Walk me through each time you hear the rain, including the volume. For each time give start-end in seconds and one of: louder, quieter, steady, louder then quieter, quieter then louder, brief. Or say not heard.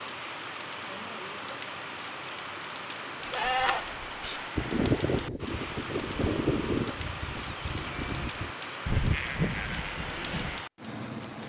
0.0-11.4 steady.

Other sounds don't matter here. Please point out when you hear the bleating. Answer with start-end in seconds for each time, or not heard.
3.2-10.6.